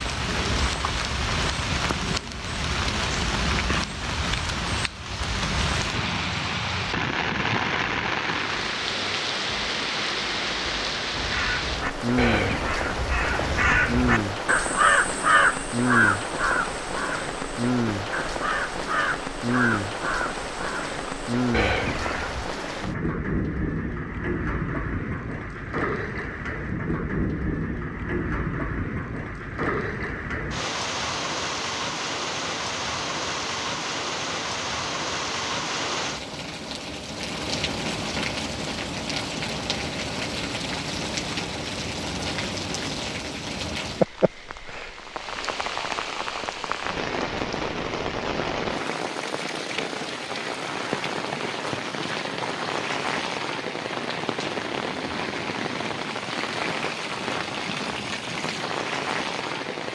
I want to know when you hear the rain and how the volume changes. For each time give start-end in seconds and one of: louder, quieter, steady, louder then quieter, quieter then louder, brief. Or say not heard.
0.0-59.9 steady.